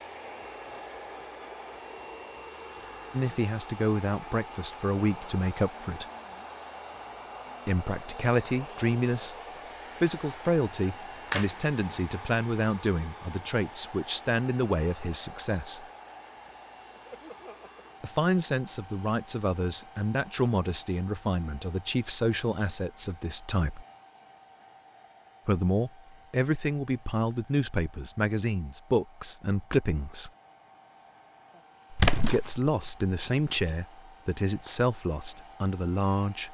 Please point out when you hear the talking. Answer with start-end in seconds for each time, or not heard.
3.1-6.0, 7.7-9.3, 10.0-15.8, 18.0-23.9, 25.4-30.3, 32.2-36.4.